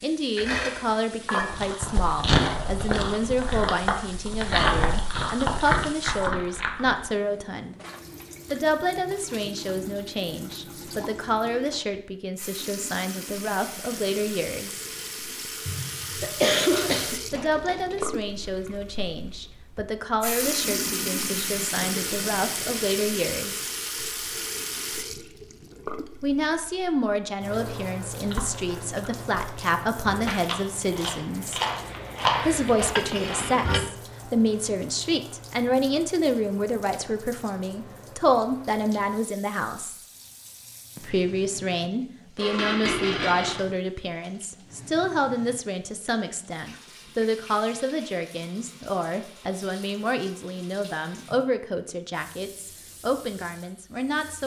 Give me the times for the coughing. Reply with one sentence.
The coughing can be heard from 15.7 to 17.1 s.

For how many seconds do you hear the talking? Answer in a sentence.
The talking can be heard for 47 seconds in total.